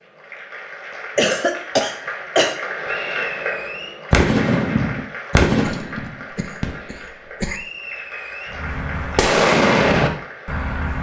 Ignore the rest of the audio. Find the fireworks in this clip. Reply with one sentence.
You can hear the fireworks from 4.1 to 6.8 s and from 8.5 to 10.9 s.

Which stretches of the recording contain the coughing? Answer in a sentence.
You can hear the coughing from 1.1 to 2.5 s and from 5.5 to 7.6 s.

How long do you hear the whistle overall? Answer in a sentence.
The whistle can be heard for 2 seconds in total.